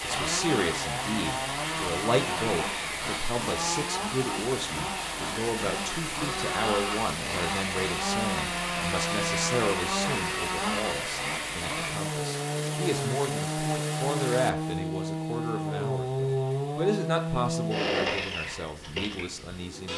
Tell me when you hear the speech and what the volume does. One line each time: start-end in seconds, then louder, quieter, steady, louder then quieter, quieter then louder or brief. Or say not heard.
0.0-19.9 steady.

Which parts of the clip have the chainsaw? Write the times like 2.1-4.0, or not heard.
0.0-19.9.